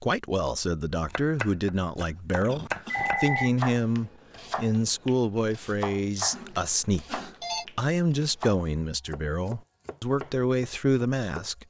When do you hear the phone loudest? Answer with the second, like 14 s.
3 s.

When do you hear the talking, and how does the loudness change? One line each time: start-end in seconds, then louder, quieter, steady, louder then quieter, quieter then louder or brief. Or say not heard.
0.0-11.6 steady.